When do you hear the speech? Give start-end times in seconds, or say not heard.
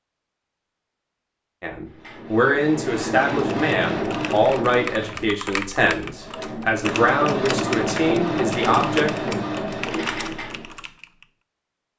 1.6-9.1.